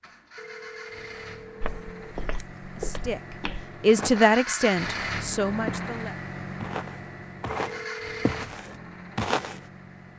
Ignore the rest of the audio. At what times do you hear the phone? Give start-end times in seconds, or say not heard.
0.3-2.1, 7.5-8.4.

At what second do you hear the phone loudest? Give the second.
8 s.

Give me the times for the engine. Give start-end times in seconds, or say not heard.
0.0-10.1.